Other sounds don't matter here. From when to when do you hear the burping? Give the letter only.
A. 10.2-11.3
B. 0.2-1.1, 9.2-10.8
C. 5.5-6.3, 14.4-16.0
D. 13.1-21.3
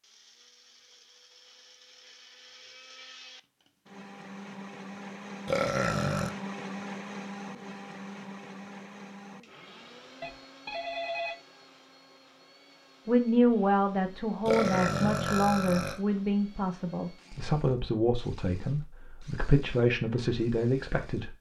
C.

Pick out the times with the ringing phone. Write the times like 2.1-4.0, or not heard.
10.2-11.3.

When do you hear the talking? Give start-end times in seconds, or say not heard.
13.1-21.3.